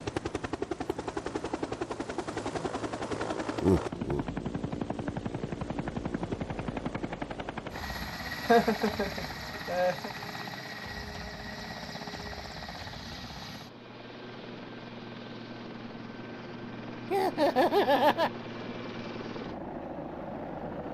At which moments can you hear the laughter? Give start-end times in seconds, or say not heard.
3.6-4.2, 8.4-10.1, 17.1-18.3.